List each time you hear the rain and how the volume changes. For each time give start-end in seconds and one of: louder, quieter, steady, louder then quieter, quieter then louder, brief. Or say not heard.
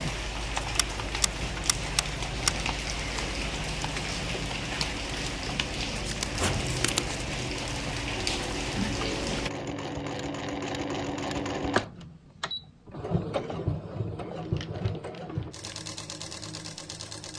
0.0-9.5 steady.